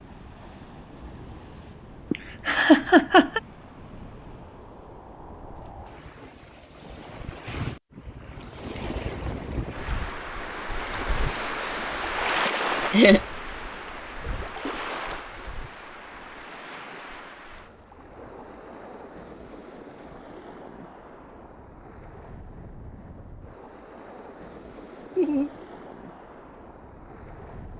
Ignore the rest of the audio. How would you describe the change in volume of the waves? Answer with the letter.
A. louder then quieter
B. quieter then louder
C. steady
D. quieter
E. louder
A.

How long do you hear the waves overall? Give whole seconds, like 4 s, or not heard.
28 s.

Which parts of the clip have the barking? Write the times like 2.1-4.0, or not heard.
not heard.